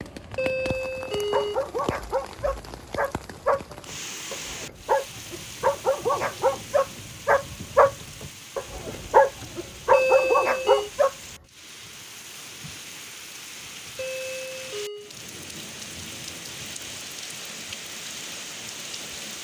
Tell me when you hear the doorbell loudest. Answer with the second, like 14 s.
10 s.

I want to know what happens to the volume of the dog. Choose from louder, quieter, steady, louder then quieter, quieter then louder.
louder.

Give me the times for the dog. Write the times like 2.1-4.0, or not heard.
1.3-11.1.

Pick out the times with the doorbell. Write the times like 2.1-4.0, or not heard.
0.3-1.6, 9.9-10.9, 13.9-15.1.